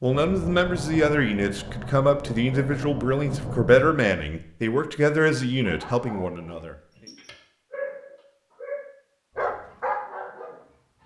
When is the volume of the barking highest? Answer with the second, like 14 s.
10 s.